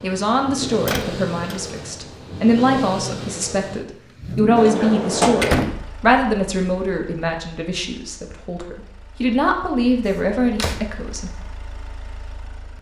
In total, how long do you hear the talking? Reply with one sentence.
The talking can be heard for 11 seconds in total.